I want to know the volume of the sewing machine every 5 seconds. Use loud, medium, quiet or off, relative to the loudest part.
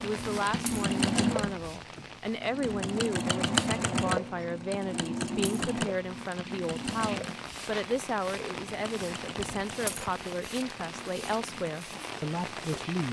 loud, medium, quiet.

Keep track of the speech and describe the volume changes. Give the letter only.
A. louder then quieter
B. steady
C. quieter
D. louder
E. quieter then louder
B.